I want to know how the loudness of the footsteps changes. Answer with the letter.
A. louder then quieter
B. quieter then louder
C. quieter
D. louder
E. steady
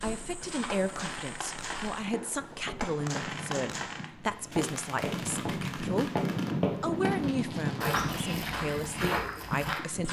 D.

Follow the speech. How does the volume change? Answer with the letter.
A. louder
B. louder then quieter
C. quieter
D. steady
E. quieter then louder
D.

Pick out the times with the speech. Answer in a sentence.
You can hear the speech from 0.0 to 6.1 s and from 6.8 to 10.0 s.